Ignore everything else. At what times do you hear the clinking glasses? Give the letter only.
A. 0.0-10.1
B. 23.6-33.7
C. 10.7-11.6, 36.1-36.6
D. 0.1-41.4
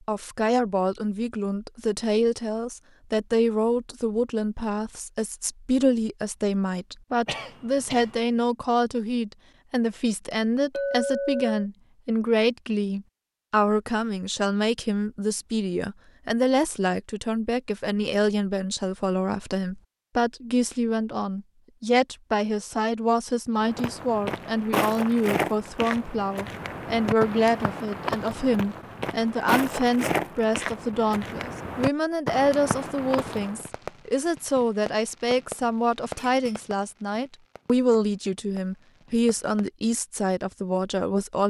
C.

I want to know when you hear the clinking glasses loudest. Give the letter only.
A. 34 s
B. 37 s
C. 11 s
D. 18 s
C.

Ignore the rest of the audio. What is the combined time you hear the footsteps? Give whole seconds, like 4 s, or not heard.
10 s.